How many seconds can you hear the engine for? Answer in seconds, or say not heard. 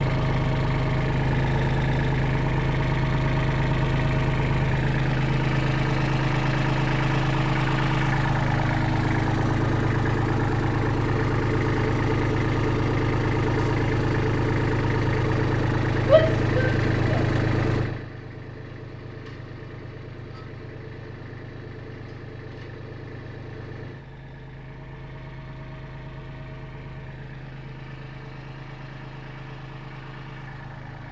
31 s.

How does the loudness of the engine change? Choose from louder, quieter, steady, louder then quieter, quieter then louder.
quieter.